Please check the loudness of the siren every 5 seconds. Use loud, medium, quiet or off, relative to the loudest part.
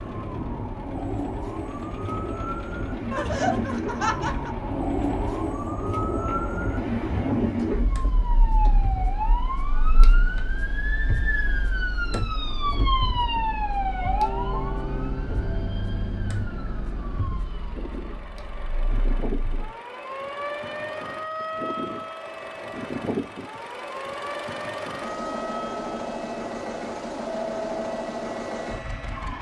loud, loud, loud, medium, medium, medium.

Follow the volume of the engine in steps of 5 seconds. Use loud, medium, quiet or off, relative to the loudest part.
medium, quiet, quiet, medium, loud, loud.